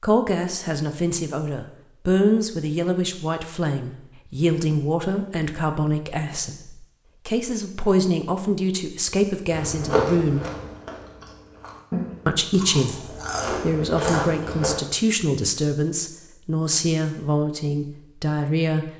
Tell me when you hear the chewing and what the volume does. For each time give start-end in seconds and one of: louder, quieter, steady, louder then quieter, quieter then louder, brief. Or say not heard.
9.5-14.8 quieter then louder.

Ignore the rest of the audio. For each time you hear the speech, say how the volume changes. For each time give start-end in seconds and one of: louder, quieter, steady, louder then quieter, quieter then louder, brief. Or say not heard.
0.0-10.4 steady
12.2-18.9 steady.